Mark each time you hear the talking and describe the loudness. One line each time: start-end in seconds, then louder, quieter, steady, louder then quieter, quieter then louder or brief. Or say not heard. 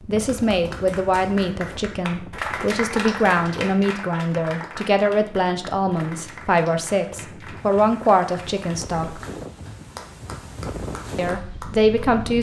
0.1-9.2 steady
11.2-12.3 brief.